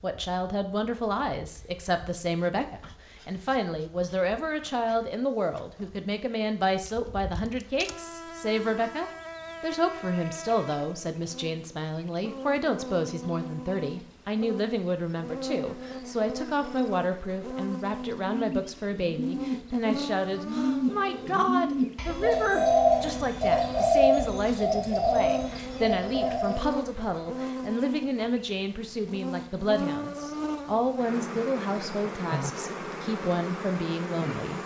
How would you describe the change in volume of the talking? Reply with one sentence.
The loudness of the talking stays about the same.